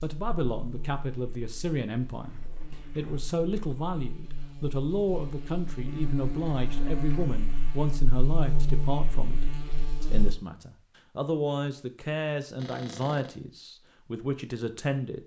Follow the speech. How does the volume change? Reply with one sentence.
The loudness of the speech stays about the same.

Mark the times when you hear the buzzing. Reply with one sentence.
You can hear the buzzing from 0.0 to 10.3 s.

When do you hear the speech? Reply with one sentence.
You can hear the speech from 0.0 to 15.2 s.